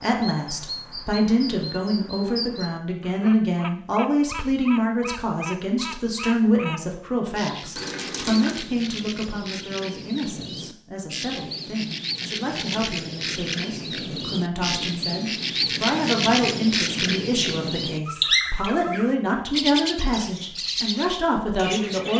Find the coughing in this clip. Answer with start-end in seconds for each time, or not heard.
7.8-8.6, 18.2-18.7.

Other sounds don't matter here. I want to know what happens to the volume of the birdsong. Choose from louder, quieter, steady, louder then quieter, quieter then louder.
louder.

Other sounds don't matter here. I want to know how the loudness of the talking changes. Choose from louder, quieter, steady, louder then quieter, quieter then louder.
quieter then louder.